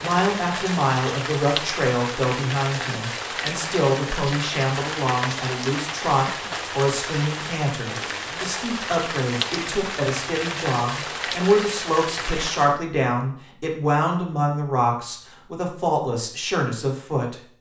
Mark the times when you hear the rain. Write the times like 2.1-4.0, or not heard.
0.0-12.8.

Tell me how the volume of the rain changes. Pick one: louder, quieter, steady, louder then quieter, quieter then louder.
steady.